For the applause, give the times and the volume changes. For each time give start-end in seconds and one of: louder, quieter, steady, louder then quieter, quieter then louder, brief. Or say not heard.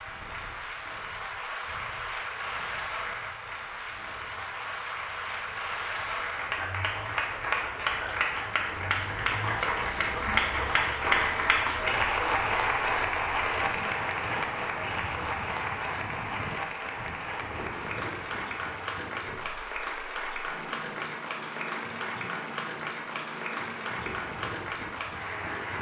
0.0-25.7 louder then quieter.